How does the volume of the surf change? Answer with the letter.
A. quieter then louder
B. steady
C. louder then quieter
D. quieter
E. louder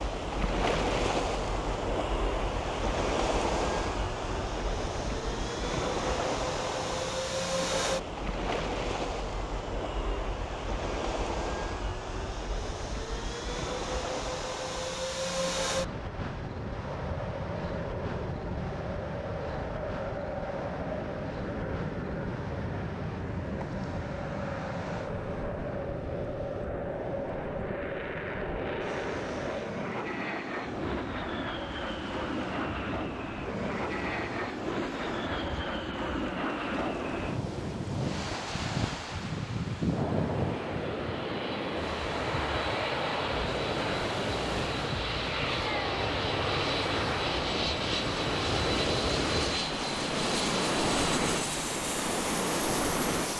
A.